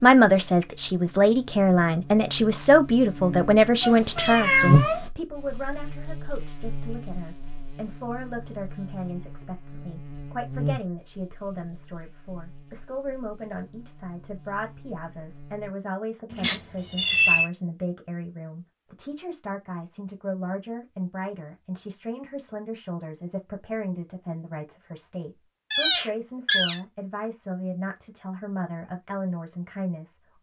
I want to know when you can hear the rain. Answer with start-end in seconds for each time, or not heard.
not heard.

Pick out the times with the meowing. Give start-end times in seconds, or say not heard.
3.8-5.1, 16.3-17.5, 25.7-26.8.